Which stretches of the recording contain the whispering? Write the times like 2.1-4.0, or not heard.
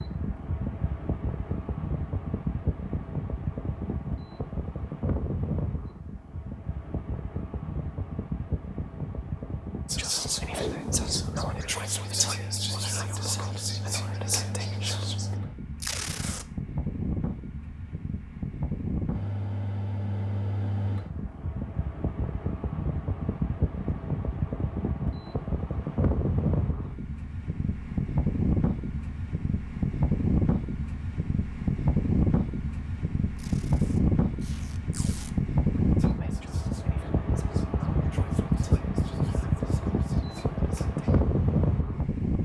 9.8-15.3, 35.8-41.2.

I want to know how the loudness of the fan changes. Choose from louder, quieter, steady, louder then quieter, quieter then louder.
louder.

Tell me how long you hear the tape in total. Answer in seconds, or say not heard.
3 s.